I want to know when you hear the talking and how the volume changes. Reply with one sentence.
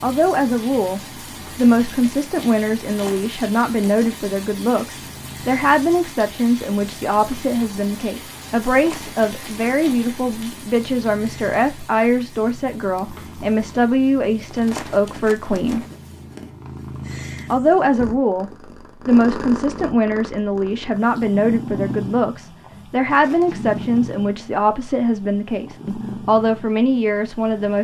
You can hear the talking from 0.0 to 15.8 s, at a steady volume; and from 17.5 to 27.8 s, at a steady volume.